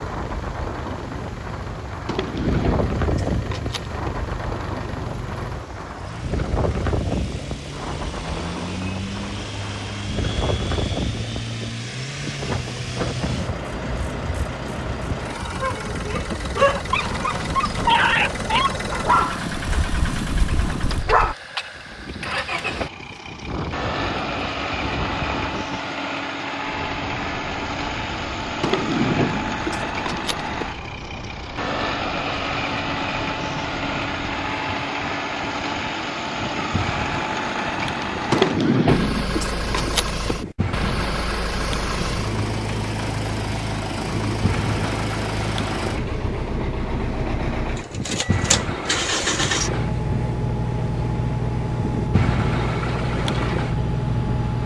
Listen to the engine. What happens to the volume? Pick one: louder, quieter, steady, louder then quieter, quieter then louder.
louder.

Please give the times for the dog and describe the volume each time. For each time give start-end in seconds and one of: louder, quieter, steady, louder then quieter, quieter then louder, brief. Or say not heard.
15.6-21.4 quieter.